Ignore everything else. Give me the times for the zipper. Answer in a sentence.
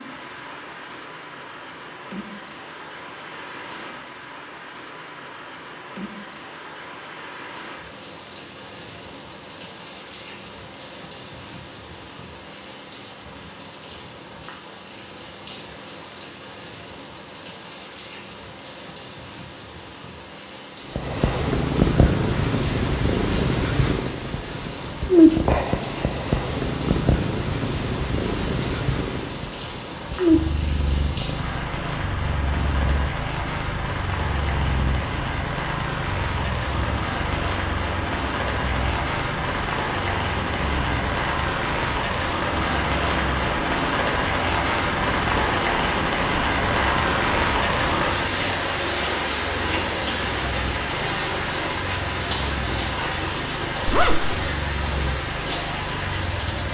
You can hear the zipper from 53.9 to 54.4 s.